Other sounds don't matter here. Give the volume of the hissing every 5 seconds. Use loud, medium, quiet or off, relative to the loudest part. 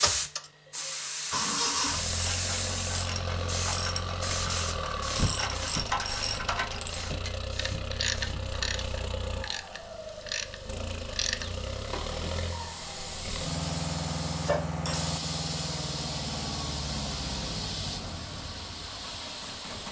loud, medium, medium, medium.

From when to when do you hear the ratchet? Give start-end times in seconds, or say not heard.
2.1-12.2.